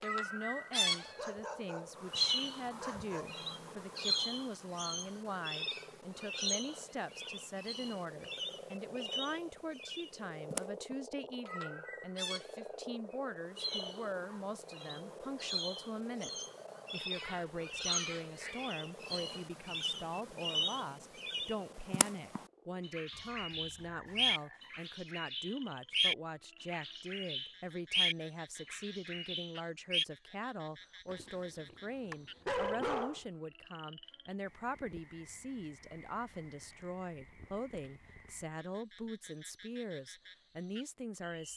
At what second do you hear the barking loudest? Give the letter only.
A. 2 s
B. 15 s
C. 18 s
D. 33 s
D.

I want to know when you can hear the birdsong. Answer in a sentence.
You can hear the birdsong from 0.0 to 30.1 s.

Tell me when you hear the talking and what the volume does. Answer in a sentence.
The talking can be heard from 0.0 to 41.5 s, at a steady volume.